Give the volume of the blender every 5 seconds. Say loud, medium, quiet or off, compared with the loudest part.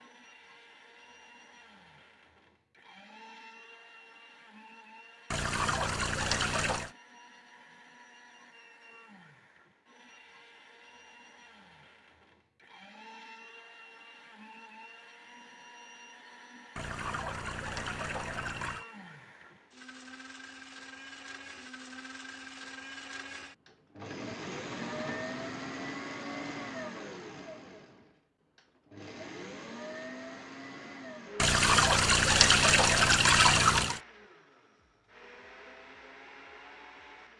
quiet, quiet, quiet, medium, loud, loud, medium, medium.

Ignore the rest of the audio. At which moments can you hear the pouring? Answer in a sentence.
You can hear the pouring from 5.3 to 6.9 s, from 16.8 to 18.9 s and from 31.4 to 34.0 s.